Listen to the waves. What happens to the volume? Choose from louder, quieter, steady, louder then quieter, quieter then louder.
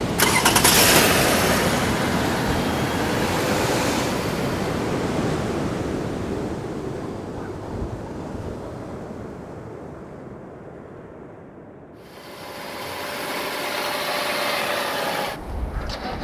quieter.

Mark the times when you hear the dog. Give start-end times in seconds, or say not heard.
not heard.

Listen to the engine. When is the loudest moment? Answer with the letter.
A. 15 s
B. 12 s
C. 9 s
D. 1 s
D.